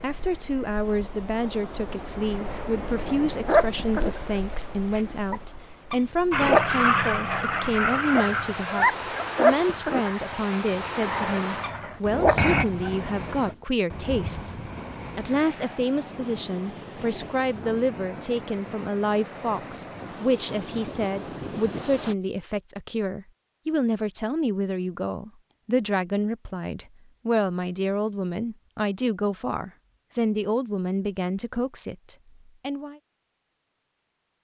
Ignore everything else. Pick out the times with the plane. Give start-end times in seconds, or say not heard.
6.3-12.7.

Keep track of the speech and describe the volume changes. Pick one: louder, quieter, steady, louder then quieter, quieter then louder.
steady.